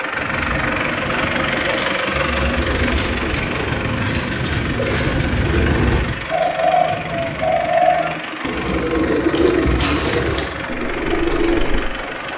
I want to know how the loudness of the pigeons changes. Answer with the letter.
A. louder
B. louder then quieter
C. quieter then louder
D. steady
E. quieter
A.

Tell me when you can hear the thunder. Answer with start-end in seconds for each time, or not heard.
3.3-6.3.